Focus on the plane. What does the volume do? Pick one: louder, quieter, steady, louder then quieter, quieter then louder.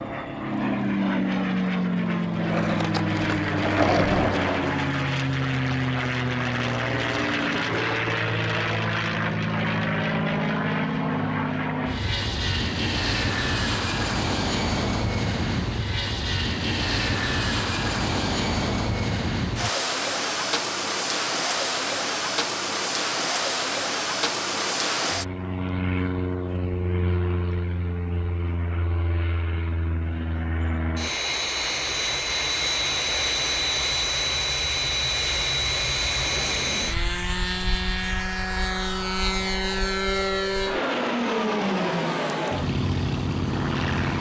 steady.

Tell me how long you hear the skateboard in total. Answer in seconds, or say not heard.
3 s.